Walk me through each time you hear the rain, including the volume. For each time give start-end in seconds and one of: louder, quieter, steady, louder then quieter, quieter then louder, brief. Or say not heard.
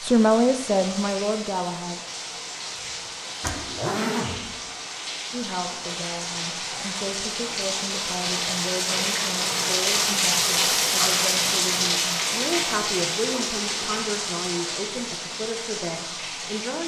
0.0-16.8 louder then quieter.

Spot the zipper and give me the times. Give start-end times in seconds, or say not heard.
3.4-4.5.